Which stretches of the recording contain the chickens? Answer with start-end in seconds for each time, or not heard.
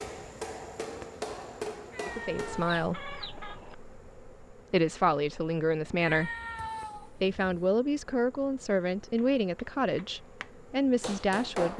2.6-3.8.